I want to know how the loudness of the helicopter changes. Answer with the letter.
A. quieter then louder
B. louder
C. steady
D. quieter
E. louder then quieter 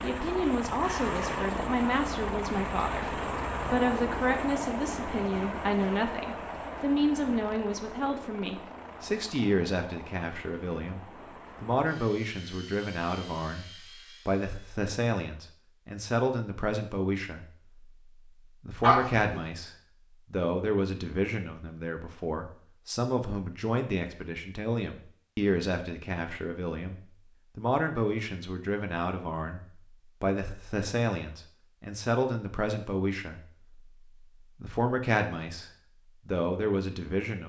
D.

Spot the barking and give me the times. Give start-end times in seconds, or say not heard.
18.8-19.4.